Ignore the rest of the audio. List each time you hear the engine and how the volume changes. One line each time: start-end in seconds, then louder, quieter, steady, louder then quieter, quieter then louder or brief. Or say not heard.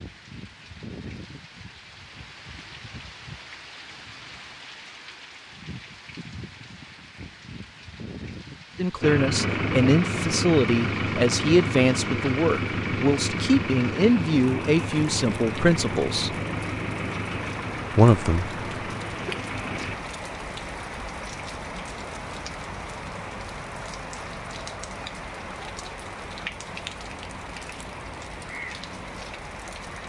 9.0-20.0 quieter.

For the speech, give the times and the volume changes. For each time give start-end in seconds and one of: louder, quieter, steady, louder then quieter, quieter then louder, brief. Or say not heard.
8.8-16.3 steady
17.9-18.5 brief.